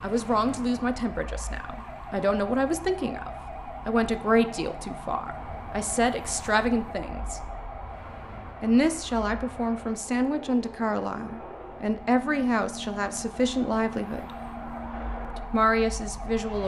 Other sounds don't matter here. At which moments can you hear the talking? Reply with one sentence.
You can hear the talking from 0.0 to 7.4 s, from 8.6 to 14.3 s and from 15.3 to 16.6 s.